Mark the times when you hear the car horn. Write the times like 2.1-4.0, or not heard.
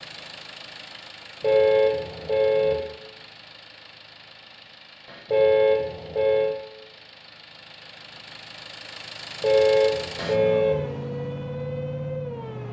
1.4-2.8, 5.3-6.5, 9.4-10.8.